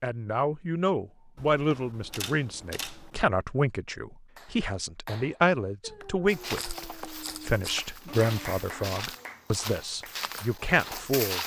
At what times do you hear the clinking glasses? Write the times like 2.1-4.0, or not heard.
not heard.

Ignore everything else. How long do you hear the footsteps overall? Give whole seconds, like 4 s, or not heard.
5 s.